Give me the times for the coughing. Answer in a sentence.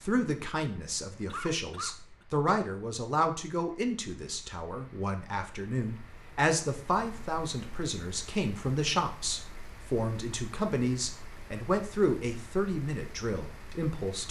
The coughing can be heard from 1.2 to 2.2 s.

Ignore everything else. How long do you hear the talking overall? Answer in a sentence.
You can hear the talking for 14 seconds altogether.